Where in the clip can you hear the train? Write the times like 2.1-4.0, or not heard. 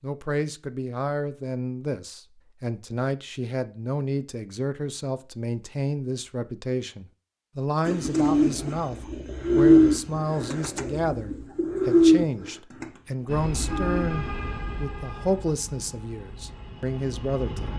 13.2-17.7.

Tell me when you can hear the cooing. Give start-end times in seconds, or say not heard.
7.8-14.8.